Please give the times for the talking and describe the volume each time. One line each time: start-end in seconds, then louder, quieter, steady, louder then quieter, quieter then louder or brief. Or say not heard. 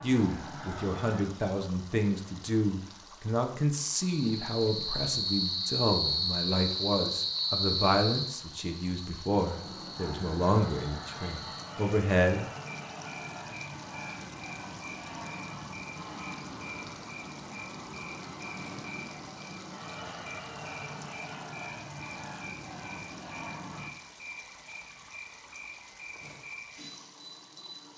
0.0-12.5 steady.